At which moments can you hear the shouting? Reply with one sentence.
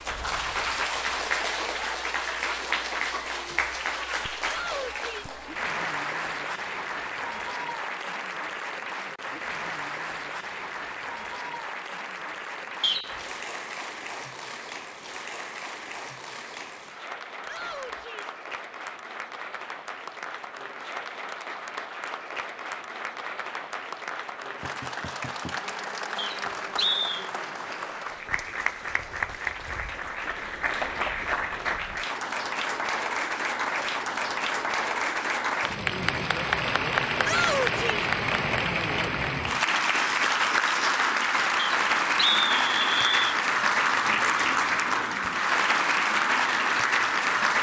The shouting can be heard from 4.5 to 5.3 s, from 17.4 to 18.4 s and from 37.2 to 38.0 s.